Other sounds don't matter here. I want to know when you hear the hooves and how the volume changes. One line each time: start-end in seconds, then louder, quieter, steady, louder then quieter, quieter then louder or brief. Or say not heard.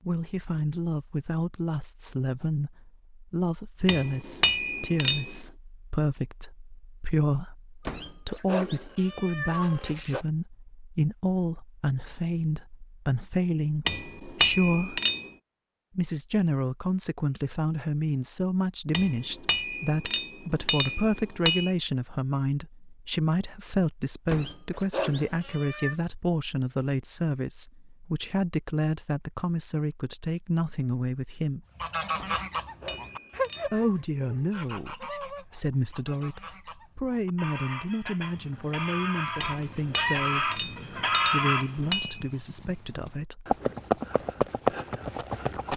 38.1-45.7 louder.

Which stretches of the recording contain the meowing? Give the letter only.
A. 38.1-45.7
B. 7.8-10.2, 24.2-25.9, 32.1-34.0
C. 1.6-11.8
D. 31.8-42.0
B.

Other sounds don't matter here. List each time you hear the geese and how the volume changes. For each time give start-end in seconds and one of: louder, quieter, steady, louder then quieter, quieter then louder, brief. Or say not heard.
31.8-42.0 quieter then louder.